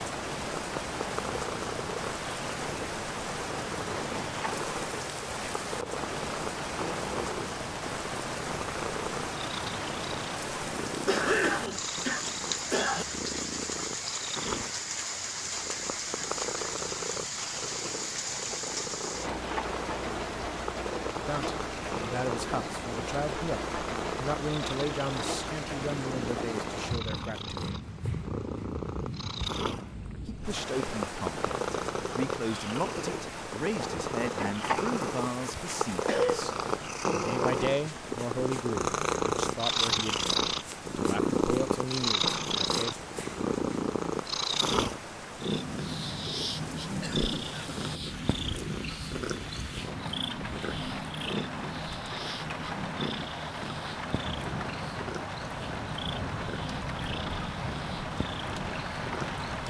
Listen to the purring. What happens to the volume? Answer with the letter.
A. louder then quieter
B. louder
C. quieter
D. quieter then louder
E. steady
A.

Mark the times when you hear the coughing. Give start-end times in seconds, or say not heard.
11.1-13.1, 36.0-36.5, 47.0-47.8.